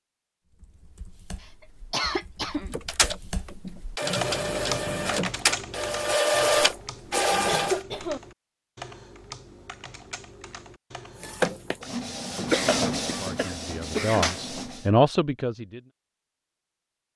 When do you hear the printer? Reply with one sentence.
You can hear the printer from 2.7 to 7.8 s and from 11.2 to 14.8 s.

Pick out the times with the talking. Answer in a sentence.
You can hear the talking from 13.1 to 15.8 s.